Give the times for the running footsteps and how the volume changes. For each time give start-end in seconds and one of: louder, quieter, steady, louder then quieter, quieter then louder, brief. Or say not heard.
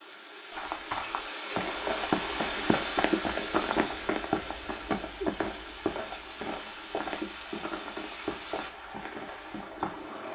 0.5-10.1 quieter.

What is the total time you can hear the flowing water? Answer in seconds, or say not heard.
10 s.